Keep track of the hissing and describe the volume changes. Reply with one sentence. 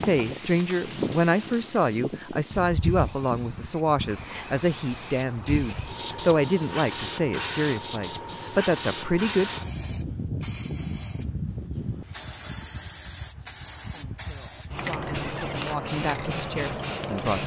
The loudness of the hissing stays about the same.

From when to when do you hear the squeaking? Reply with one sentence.
The squeaking can be heard from 15.2 to 15.6 s.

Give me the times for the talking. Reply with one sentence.
The talking can be heard from 0.0 to 9.5 s and from 13.9 to 17.4 s.